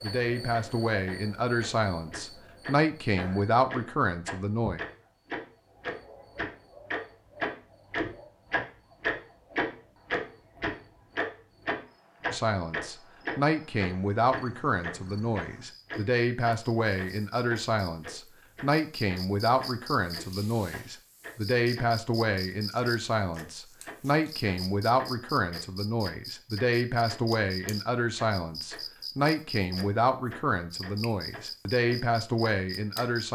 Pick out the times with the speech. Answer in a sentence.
The speech can be heard from 0.0 to 4.8 s and from 12.3 to 33.3 s.